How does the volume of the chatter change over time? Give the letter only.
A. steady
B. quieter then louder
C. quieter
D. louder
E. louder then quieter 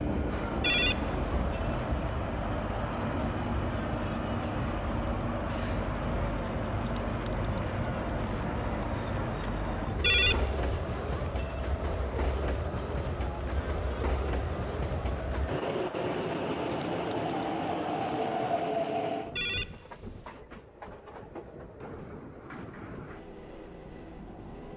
A.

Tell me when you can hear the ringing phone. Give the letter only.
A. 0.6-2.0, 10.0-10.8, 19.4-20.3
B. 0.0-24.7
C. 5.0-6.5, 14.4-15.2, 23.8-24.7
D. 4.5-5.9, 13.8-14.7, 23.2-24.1
A.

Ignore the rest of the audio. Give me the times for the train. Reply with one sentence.
You can hear the train from 0.0 to 24.7 s.